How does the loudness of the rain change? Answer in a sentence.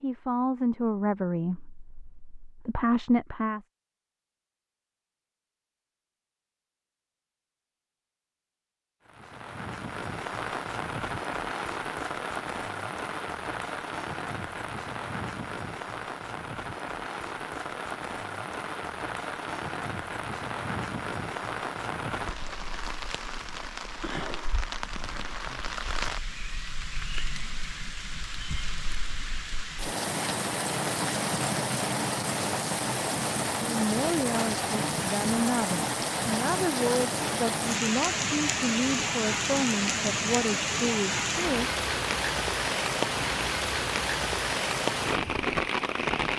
The volume of the rain goes up.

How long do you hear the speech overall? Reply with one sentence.
You can hear the speech for 12 seconds altogether.